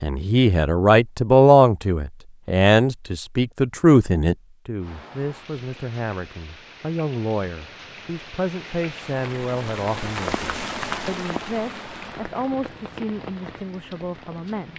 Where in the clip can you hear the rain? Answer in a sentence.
The rain can be heard from 4.8 to 14.7 s.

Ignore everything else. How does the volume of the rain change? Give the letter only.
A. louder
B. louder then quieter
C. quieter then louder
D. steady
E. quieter
B.